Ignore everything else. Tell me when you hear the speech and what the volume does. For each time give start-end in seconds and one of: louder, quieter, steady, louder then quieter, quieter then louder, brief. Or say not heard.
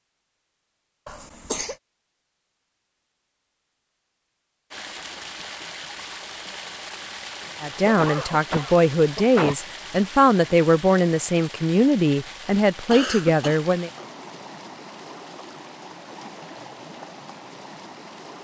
7.6-13.9 steady.